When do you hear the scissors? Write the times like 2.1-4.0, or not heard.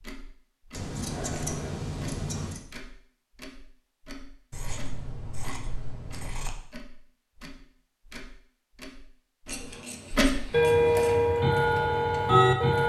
0.8-2.6, 4.5-6.5, 9.4-11.1.